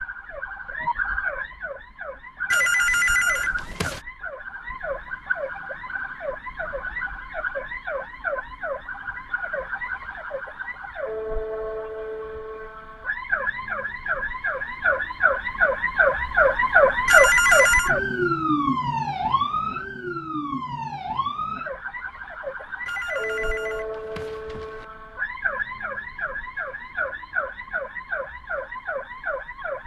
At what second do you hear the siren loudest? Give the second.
17 s.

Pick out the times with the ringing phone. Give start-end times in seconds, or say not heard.
2.5-4.0, 17.1-17.9, 22.9-24.9.